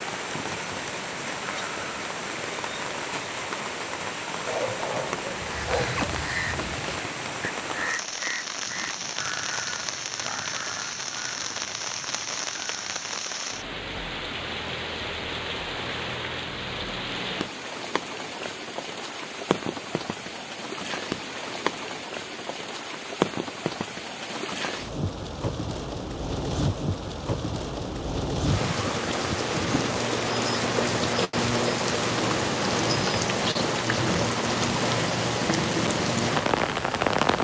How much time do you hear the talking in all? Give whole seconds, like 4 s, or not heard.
not heard.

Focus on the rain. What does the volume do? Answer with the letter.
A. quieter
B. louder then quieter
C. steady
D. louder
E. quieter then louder
D.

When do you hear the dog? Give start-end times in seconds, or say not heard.
4.5-6.1.